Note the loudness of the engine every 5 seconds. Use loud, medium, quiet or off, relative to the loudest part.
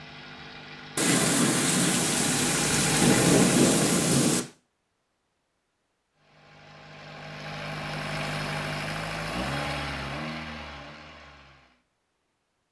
loud, loud, medium.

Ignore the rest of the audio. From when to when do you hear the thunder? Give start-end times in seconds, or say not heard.
0.9-4.4.